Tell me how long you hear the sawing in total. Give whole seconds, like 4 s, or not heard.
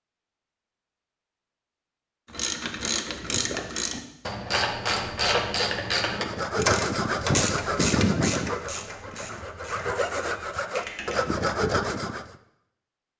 6 s.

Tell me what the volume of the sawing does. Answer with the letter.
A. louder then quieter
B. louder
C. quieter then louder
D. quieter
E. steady
C.